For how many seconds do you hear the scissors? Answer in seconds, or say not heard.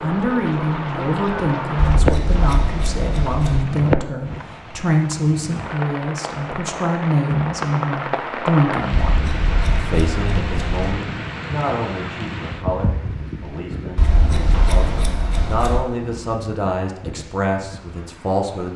6 s.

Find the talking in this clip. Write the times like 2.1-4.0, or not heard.
0.0-18.7.